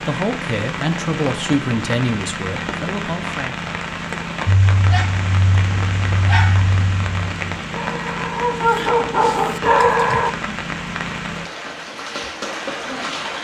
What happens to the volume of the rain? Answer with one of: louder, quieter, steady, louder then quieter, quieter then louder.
steady.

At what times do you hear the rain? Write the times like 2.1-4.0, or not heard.
0.0-13.3.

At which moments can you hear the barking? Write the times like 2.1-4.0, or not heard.
4.5-10.3.